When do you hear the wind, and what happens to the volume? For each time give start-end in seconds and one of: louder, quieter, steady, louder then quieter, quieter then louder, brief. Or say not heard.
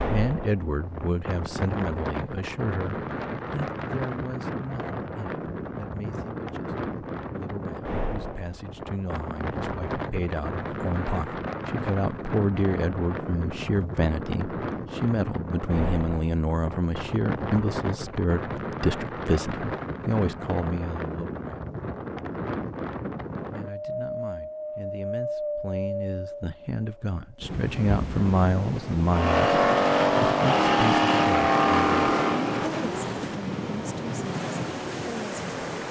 0.0-35.8 steady.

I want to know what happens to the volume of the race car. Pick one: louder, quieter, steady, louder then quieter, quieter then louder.
quieter.